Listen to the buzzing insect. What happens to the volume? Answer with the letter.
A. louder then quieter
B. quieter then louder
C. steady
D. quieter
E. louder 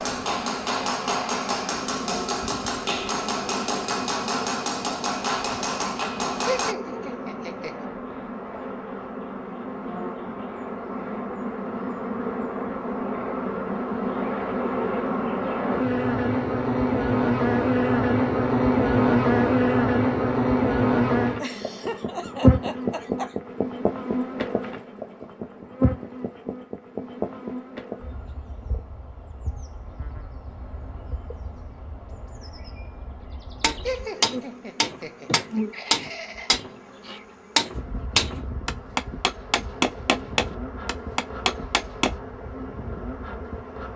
A.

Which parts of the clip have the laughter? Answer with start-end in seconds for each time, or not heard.
6.5-7.8, 21.4-23.4, 33.9-36.5.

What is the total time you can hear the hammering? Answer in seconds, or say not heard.
15 s.